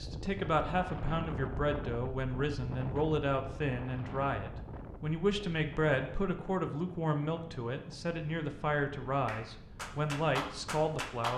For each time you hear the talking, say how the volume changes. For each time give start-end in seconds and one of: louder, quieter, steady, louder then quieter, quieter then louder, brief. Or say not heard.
0.0-11.3 steady.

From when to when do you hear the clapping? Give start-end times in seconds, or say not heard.
9.2-11.3.